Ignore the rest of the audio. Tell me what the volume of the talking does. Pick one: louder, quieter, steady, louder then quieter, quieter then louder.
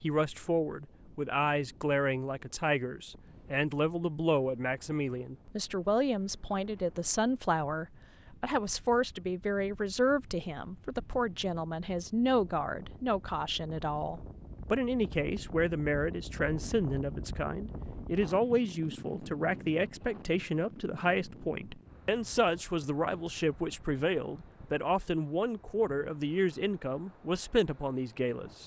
steady.